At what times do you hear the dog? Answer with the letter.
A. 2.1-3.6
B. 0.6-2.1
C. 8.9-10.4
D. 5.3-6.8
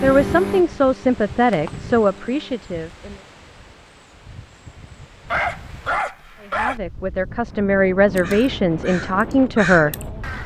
D.